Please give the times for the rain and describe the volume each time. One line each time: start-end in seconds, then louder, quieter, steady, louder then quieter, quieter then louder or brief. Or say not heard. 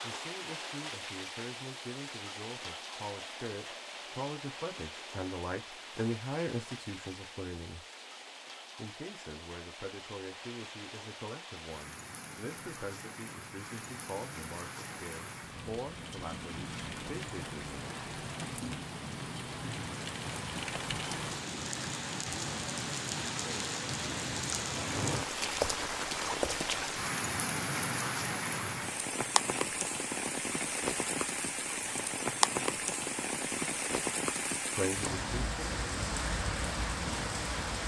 0.0-37.8 louder.